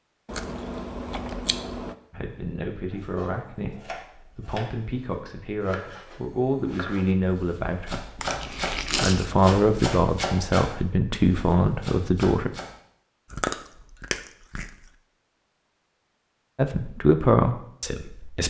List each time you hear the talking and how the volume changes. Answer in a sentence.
The talking can be heard from 2.1 to 12.5 s, getting louder; and briefly from 16.6 to 18.4 s.